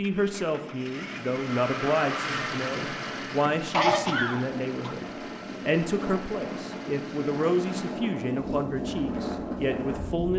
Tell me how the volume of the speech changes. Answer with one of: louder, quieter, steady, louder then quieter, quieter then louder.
steady.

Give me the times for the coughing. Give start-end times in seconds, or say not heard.
3.6-5.0.